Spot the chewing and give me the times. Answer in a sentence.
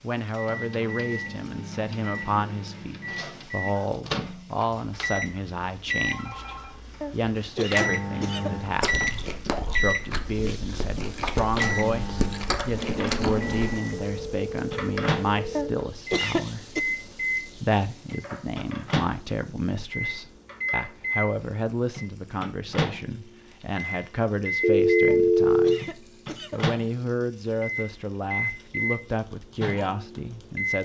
The chewing can be heard from 8.8 to 13.8 s.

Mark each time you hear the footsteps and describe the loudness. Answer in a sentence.
You can't hear the footsteps here.